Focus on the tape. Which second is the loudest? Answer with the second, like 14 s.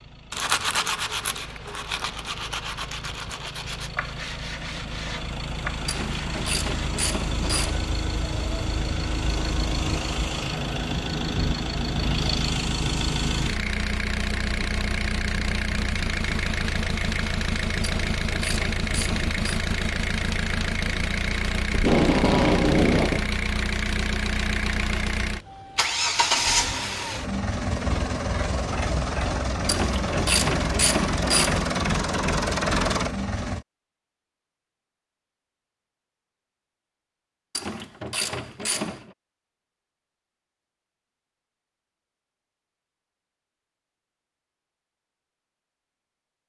22 s.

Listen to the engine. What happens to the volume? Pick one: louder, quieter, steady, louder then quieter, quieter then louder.
louder.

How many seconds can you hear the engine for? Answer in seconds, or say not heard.
34 s.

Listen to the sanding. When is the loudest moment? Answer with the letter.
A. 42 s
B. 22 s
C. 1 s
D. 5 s
C.